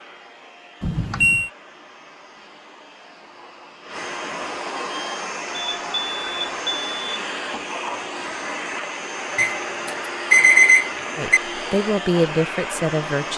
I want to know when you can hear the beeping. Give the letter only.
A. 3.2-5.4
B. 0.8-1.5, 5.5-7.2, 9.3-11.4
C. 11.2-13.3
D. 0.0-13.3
B.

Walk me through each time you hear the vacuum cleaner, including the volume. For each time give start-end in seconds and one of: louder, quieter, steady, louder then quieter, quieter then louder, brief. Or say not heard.
0.0-13.3 louder.